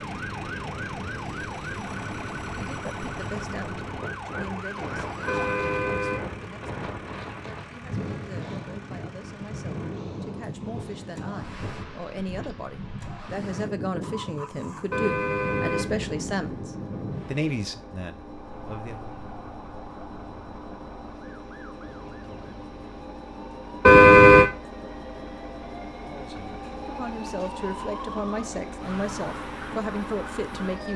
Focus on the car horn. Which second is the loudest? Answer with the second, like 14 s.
24 s.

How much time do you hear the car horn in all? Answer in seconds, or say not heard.
3 s.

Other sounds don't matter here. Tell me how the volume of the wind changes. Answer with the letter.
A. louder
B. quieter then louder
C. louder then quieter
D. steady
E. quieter
D.